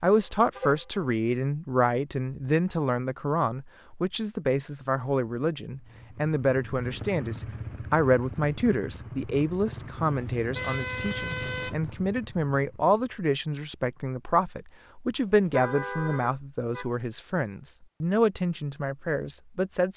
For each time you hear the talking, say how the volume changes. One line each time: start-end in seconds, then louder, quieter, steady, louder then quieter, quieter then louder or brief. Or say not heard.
0.0-19.9 steady.